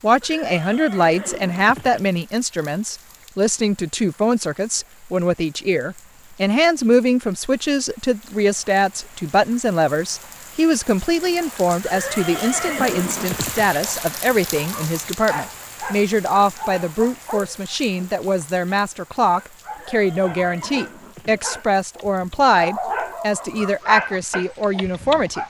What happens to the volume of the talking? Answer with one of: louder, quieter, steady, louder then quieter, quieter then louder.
steady.